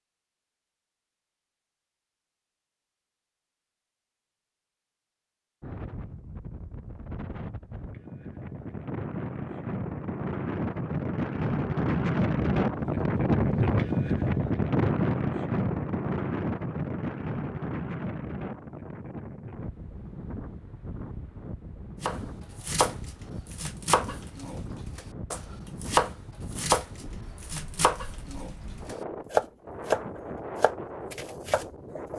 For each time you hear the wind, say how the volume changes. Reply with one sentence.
You can hear the wind from 5.6 to 32.1 s, getting louder then quieter.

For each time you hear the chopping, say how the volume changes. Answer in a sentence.
You can hear the chopping from 22.0 to 32.1 s, at a steady volume.